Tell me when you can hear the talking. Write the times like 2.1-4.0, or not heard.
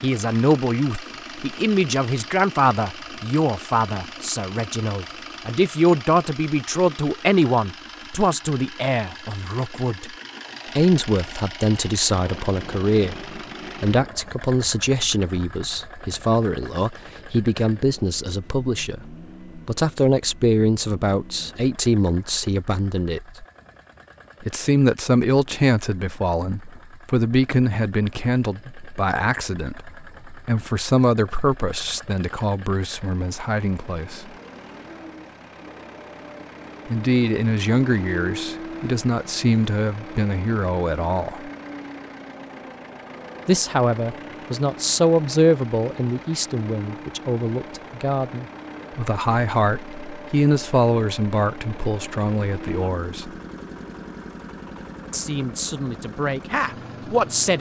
0.0-10.1, 10.8-23.3, 24.4-34.3, 36.9-41.5, 43.5-53.3, 55.1-57.5.